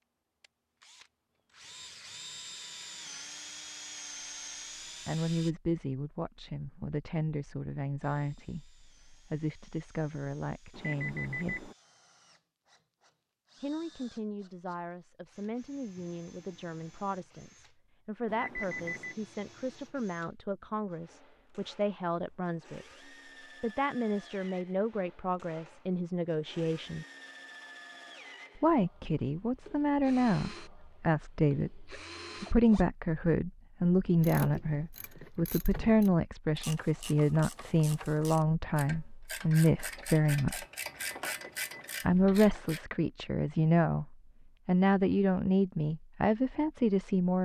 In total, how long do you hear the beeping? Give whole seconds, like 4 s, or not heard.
3 s.